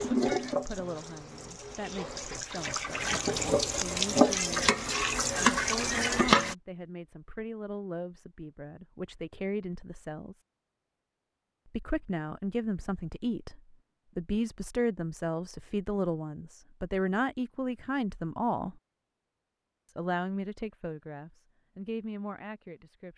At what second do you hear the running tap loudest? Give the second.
6 s.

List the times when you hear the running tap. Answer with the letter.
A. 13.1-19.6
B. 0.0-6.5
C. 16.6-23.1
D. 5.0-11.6
B.